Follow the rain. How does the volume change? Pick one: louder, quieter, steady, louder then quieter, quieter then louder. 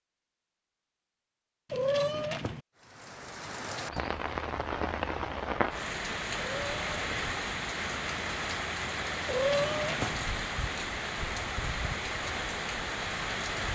steady.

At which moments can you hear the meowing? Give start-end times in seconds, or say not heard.
1.7-2.6, 6.4-7.2, 9.2-10.2.